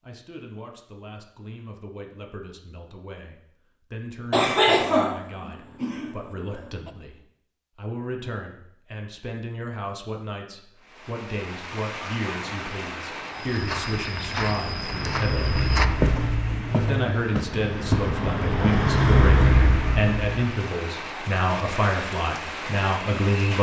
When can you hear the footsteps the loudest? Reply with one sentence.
The loudest moment of the footsteps is at 16 seconds.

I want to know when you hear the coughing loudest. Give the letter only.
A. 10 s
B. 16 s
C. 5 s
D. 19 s
C.